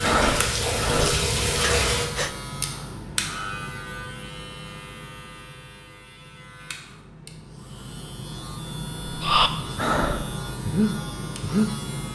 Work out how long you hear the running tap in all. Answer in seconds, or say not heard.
2 s.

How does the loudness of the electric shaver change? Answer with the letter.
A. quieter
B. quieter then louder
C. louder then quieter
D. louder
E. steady
B.